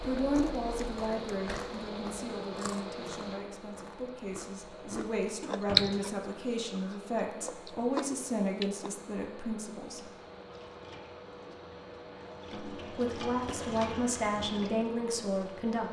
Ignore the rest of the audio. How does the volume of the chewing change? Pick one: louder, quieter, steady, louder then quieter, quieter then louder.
louder then quieter.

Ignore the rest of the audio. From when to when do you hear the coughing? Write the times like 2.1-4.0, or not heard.
not heard.